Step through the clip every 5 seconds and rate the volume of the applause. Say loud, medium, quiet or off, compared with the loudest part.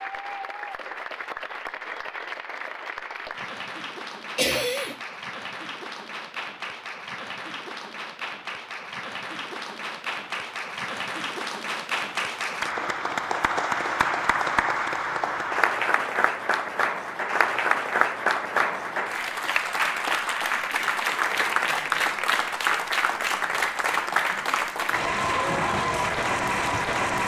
medium, medium, loud, loud, loud, loud.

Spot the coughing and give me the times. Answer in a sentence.
You can hear the coughing from 4.3 to 5.0 s.